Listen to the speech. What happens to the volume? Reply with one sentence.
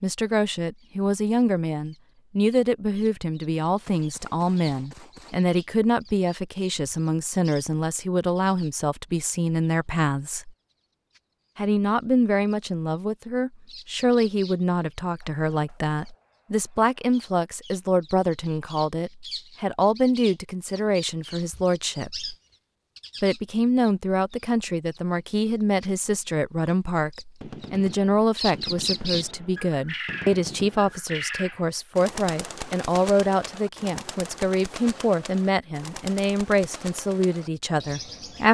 The volume of the speech stays about the same.